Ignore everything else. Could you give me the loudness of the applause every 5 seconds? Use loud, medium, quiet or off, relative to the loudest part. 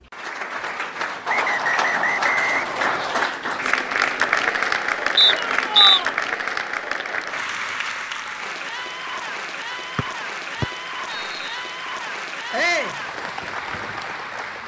loud, loud, medium.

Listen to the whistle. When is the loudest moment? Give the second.
6 s.